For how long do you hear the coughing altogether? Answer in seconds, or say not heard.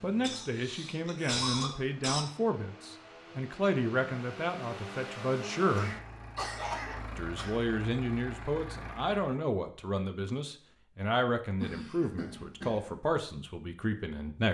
5 s.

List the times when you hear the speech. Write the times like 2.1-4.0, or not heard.
0.0-6.0, 7.2-14.4.